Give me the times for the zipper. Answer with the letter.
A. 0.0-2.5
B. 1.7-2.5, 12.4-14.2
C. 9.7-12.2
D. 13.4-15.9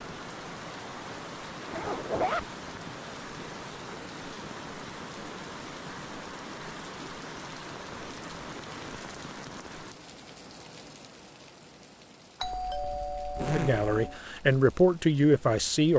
B.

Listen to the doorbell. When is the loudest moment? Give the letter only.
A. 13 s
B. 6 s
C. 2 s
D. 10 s
A.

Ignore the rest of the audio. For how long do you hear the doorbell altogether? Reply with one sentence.
You can hear the doorbell for 2 seconds altogether.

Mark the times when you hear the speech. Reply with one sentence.
You can hear the speech from 13.4 to 15.9 s.